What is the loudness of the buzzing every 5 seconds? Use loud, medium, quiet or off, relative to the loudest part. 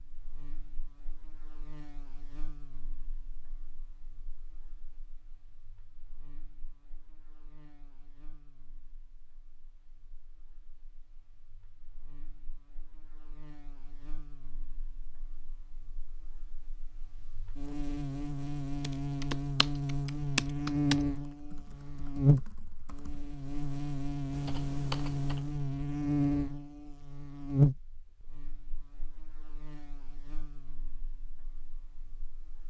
quiet, quiet, quiet, medium, loud, loud, quiet.